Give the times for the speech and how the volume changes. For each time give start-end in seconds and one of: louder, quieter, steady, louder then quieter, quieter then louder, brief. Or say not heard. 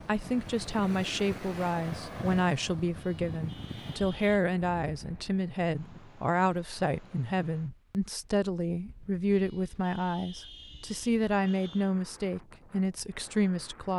0.1-13.9 steady.